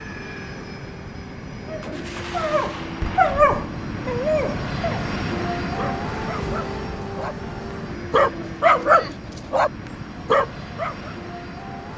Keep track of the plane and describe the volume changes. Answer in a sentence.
The loudness of the plane goes up, then down.